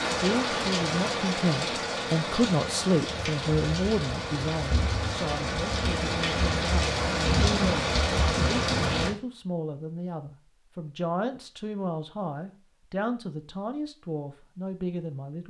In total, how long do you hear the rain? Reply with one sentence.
The rain can be heard for 9 seconds in total.